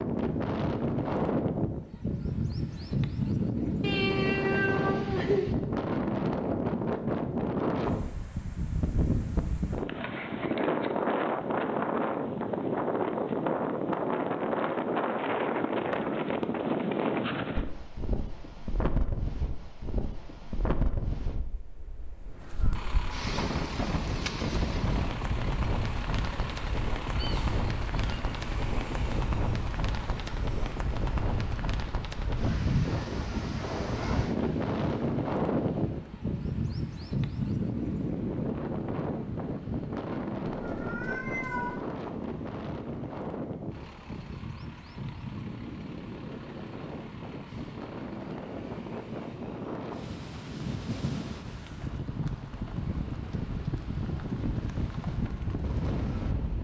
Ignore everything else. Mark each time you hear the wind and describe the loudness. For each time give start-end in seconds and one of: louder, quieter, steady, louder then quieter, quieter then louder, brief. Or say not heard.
0.0-56.5 quieter.